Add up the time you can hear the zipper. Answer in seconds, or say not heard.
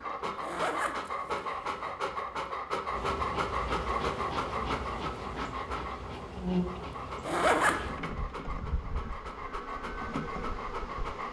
2 s.